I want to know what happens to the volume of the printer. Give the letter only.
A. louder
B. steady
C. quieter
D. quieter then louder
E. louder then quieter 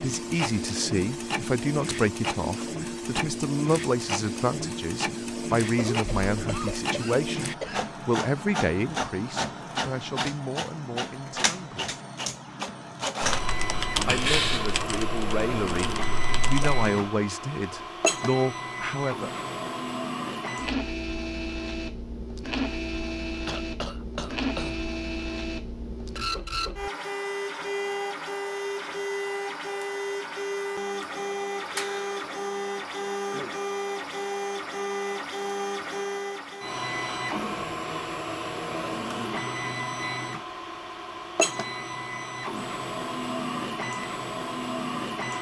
B.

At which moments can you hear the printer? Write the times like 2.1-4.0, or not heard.
0.0-45.3.